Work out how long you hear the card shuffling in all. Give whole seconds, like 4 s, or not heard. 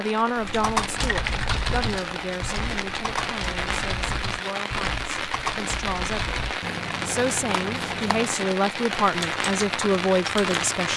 4 s.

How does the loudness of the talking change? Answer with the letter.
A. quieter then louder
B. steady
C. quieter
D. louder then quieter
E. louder
A.